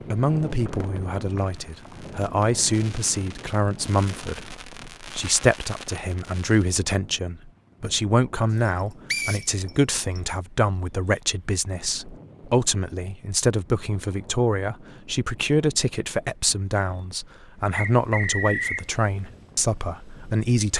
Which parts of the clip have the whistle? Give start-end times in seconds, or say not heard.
0.7-2.0, 9.1-10.2, 17.7-18.9.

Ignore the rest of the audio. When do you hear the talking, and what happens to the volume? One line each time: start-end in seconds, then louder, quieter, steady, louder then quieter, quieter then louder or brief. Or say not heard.
0.1-20.7 steady.